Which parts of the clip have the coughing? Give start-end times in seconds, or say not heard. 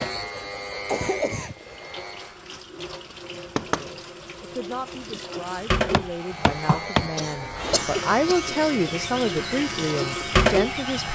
0.8-1.9, 7.2-8.6.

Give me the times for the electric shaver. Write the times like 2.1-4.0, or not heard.
0.0-2.4, 6.1-11.0.